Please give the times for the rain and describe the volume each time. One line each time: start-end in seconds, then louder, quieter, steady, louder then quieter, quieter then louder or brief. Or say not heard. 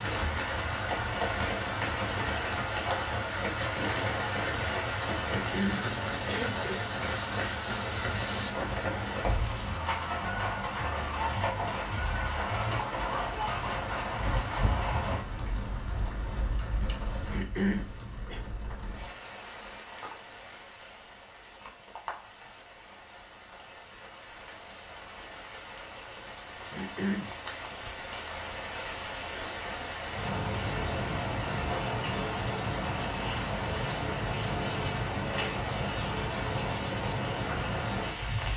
0.0-38.5 quieter then louder.